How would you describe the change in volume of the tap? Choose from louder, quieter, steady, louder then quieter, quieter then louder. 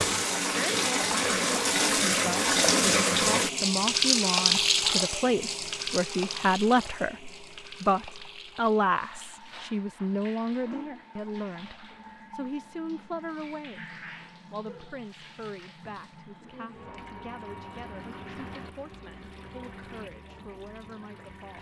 quieter.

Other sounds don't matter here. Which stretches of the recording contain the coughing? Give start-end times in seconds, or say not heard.
not heard.